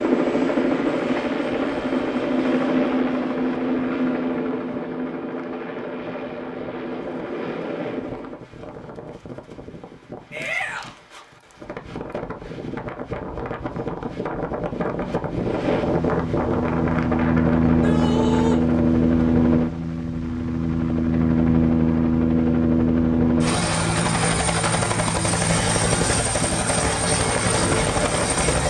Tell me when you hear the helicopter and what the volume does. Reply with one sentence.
You can hear the helicopter from 0.0 to 8.4 s, getting quieter; and from 15.4 to 28.6 s, at a steady volume.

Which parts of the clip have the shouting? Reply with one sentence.
You can hear the shouting from 10.3 to 10.9 s and from 17.6 to 18.6 s.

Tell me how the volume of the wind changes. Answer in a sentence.
The loudness of the wind goes up.